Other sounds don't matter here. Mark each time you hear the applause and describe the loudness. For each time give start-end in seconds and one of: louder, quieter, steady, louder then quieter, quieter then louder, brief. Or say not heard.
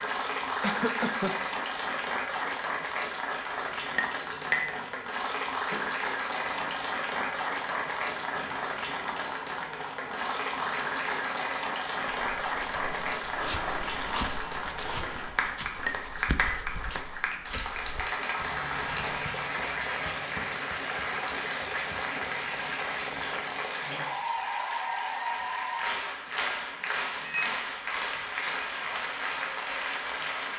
0.0-30.5 steady.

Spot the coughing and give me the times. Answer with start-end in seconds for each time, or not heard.
0.6-1.4.